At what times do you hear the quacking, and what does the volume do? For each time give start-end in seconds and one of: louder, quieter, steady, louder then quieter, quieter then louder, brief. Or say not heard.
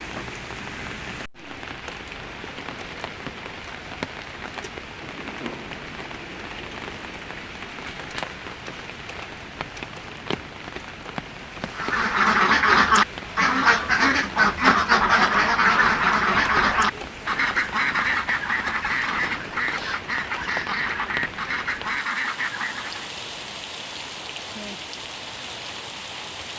11.8-23.1 quieter.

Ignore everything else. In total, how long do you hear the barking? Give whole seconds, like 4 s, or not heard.
2 s.